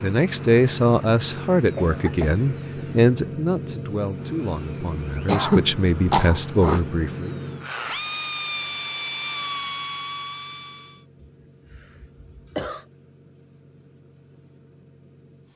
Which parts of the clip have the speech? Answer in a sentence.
You can hear the speech from 0.0 to 7.3 s.